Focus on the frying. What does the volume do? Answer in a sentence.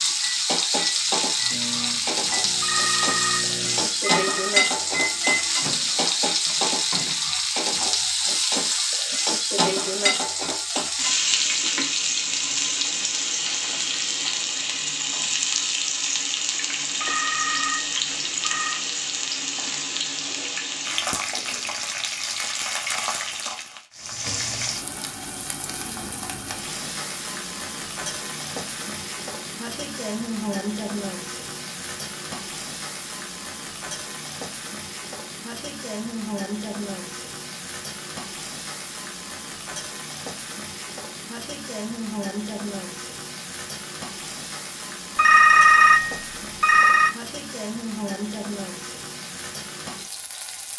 The loudness of the frying goes down.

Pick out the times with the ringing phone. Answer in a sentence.
You can hear the ringing phone from 2.6 to 4.5 s, from 17.0 to 18.9 s and from 45.1 to 47.1 s.